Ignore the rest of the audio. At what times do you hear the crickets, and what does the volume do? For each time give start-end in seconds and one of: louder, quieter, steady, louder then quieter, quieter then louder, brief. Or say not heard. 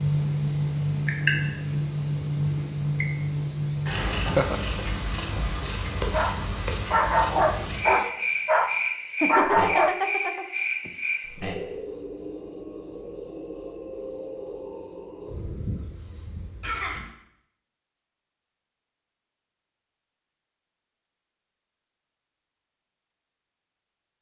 0.0-17.1 quieter.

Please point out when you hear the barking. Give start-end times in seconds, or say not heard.
6.1-9.9.